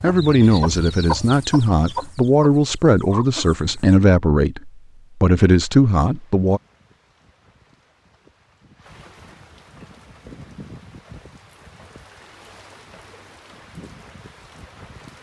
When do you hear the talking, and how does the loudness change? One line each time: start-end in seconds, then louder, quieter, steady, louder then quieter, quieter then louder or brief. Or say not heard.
0.0-6.6 steady.